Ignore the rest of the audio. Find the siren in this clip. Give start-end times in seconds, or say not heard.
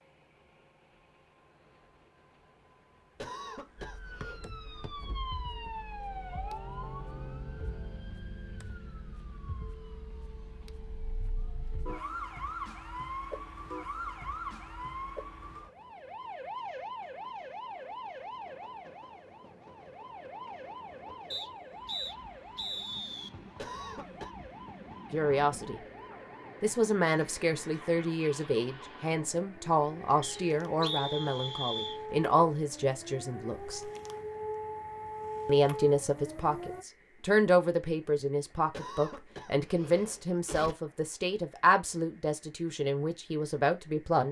3.8-36.9.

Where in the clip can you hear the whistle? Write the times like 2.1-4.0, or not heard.
4.2-4.9, 21.3-23.3, 30.2-32.0.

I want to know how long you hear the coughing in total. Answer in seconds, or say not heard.
4 s.